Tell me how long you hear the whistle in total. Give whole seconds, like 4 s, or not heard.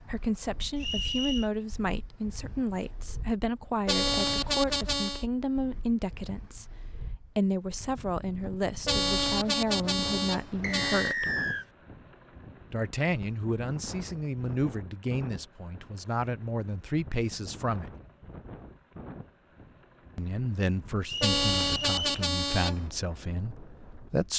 3 s.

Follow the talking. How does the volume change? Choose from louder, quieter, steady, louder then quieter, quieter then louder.
steady.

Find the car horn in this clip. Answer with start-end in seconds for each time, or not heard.
3.9-5.2, 8.8-11.2, 21.2-22.9.